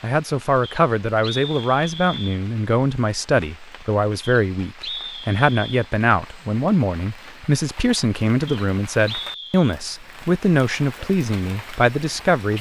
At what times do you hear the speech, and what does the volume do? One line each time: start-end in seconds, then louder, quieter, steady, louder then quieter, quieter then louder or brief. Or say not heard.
0.0-12.5 steady.